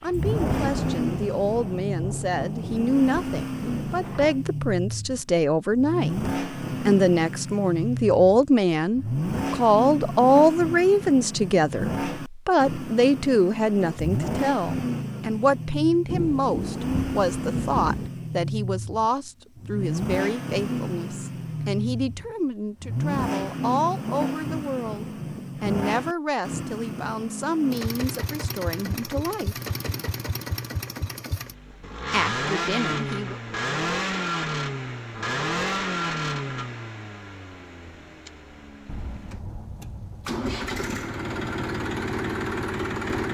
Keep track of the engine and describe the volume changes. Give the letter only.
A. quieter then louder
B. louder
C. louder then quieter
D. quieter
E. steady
E.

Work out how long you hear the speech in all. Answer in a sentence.
The speech can be heard for 31 seconds in total.